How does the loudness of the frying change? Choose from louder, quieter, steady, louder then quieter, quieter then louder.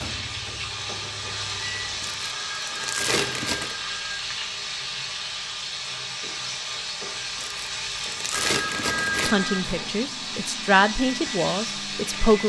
steady.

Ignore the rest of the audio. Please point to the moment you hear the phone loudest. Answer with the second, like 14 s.
9 s.